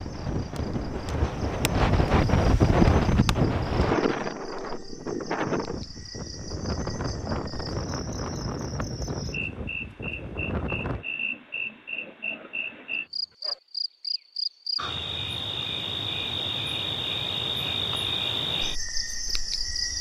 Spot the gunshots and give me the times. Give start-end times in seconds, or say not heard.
not heard.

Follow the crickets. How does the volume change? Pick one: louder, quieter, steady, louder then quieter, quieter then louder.
louder.